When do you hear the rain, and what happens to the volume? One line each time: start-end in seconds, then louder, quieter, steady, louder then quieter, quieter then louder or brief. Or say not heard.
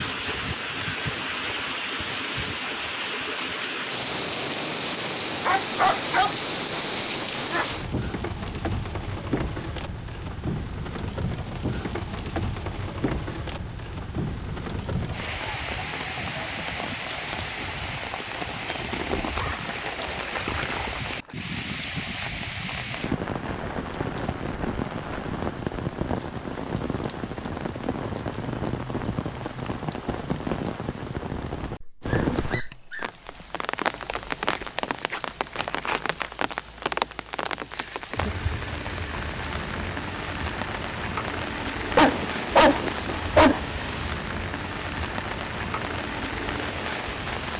0.0-47.5 steady.